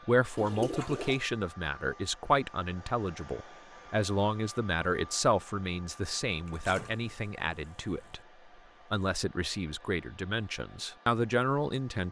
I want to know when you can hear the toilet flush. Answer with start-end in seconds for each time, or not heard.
0.3-1.2, 6.2-8.2.